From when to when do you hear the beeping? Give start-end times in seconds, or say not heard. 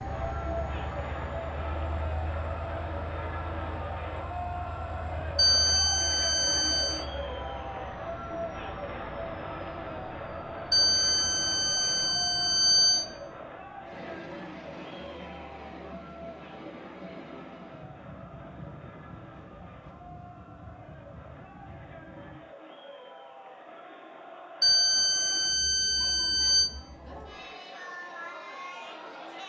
5.3-7.0, 10.7-13.1, 24.6-26.7.